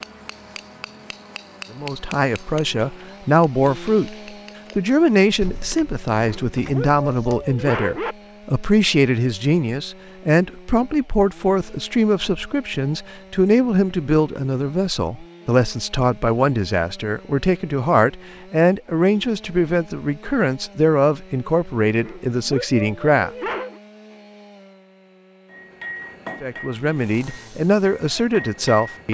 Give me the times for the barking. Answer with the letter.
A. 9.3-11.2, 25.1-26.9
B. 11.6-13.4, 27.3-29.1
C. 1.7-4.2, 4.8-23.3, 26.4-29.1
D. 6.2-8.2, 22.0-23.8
D.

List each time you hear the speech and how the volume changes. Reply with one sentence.
The speech can be heard briefly from 1.7 to 4.2 s; from 4.8 to 23.3 s, at a steady volume; and briefly from 26.4 to 29.1 s.